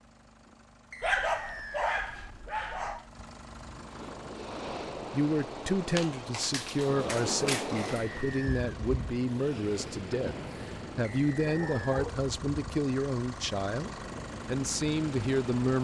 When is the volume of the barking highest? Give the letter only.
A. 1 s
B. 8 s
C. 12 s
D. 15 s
A.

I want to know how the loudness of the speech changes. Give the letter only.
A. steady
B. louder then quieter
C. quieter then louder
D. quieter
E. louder
A.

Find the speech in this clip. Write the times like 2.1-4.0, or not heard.
5.1-10.3, 10.9-15.7.